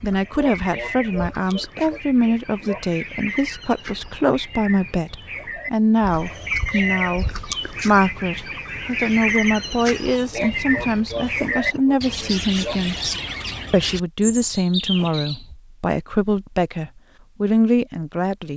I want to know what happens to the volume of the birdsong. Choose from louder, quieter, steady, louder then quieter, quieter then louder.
louder.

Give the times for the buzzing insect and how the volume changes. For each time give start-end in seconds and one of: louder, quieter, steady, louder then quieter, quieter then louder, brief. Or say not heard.
not heard.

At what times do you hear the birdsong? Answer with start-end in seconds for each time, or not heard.
0.0-15.6.